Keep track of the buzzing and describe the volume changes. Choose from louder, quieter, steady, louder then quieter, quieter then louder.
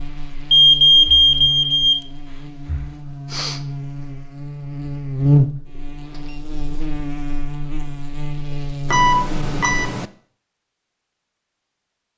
louder then quieter.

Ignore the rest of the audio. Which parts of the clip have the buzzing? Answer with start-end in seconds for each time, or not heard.
0.0-9.9.